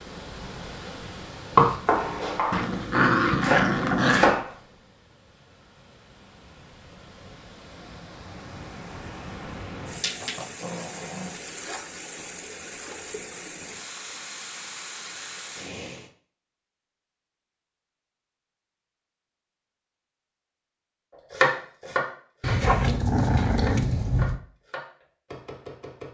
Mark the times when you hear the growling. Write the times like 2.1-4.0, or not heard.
2.5-4.4, 9.9-11.3, 22.4-24.4.